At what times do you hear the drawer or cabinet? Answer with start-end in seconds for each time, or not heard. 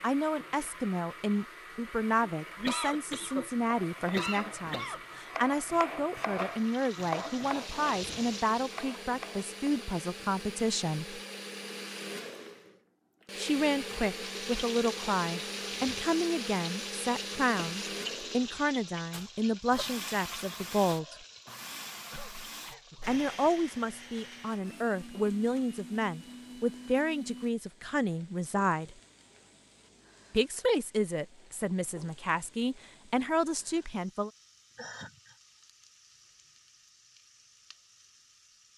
not heard.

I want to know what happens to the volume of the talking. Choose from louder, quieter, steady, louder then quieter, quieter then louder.
steady.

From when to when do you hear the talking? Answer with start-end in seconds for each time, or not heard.
0.0-11.2, 13.3-21.1, 23.1-28.9, 30.3-34.3.